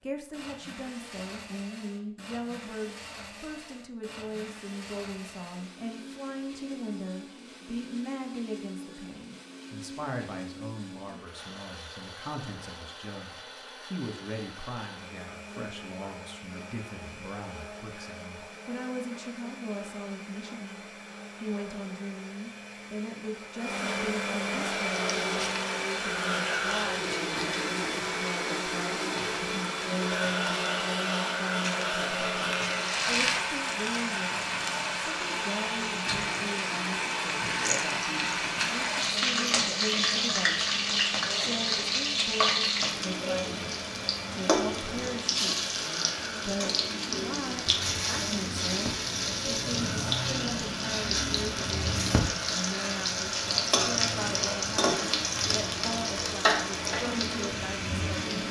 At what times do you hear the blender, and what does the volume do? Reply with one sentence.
You can hear the blender from 0.0 to 58.4 s, getting louder then quieter.